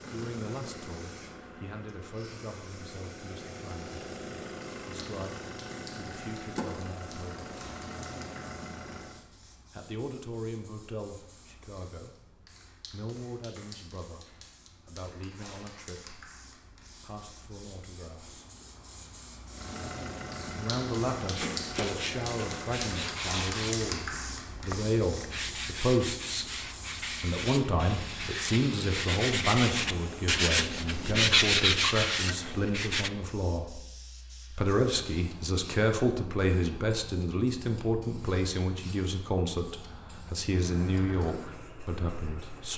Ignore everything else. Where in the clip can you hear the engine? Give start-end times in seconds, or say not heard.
0.0-9.2, 19.4-23.2, 40.5-42.7.